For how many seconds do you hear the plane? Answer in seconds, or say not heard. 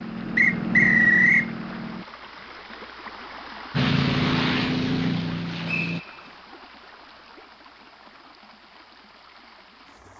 4 s.